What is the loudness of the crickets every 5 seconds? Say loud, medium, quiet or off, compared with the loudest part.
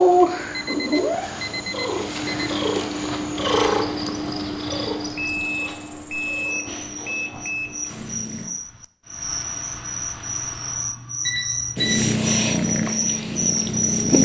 quiet, medium, loud.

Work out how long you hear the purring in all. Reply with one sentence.
You can hear the purring for 11 seconds altogether.